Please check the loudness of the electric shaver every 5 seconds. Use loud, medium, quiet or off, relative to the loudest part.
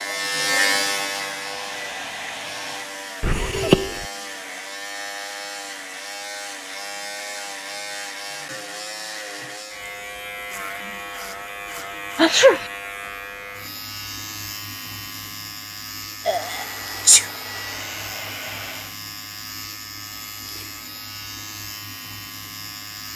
loud, medium, medium, medium, medium.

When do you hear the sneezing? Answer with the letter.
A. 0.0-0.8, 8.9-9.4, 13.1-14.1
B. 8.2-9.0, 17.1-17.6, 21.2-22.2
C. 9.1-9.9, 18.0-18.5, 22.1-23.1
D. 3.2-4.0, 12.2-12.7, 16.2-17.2
D.